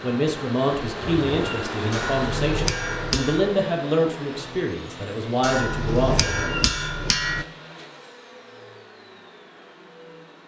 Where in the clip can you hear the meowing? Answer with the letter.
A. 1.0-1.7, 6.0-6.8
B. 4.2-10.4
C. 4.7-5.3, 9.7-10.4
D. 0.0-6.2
A.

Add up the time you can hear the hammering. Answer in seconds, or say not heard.
4 s.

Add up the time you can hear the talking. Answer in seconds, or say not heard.
6 s.